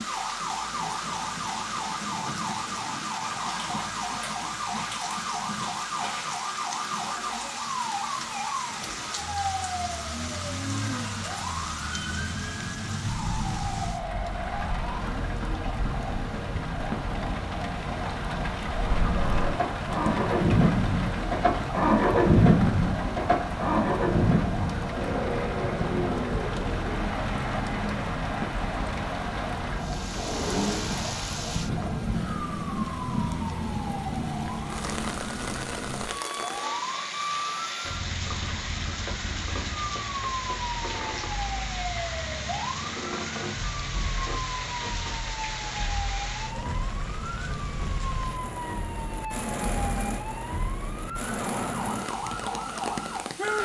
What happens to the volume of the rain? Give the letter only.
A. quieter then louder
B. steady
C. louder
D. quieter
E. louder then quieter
B.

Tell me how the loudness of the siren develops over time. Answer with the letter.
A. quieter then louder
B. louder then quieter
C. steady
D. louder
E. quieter
C.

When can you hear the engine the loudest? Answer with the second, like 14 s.
22 s.